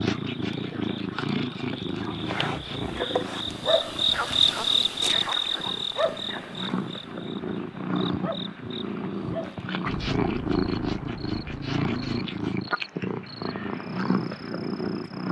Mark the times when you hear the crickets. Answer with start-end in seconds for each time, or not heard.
0.0-15.2.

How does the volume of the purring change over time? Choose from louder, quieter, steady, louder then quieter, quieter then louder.
quieter then louder.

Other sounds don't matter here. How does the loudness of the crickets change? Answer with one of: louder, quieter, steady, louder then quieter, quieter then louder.
louder then quieter.